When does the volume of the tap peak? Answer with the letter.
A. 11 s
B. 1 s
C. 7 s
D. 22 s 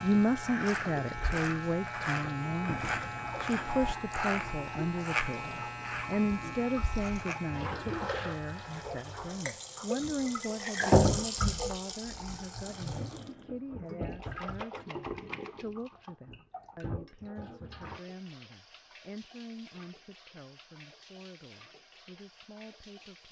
A.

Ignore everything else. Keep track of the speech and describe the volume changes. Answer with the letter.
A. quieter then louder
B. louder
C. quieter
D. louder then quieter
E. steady
C.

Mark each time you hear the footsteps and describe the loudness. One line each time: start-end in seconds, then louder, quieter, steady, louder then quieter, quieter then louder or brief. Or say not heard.
not heard.